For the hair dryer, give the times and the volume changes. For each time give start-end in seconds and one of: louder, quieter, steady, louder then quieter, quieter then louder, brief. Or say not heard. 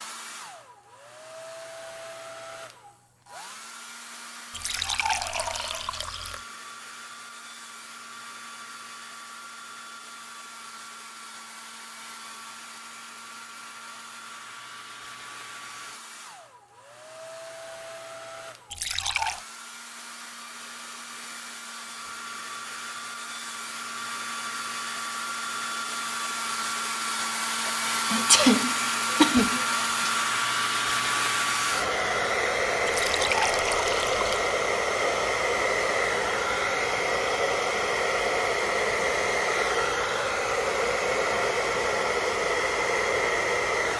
0.0-43.9 louder.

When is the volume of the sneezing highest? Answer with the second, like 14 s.
28 s.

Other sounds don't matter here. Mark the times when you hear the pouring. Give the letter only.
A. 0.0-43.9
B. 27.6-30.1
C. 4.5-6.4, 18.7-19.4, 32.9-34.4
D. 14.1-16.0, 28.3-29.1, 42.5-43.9
C.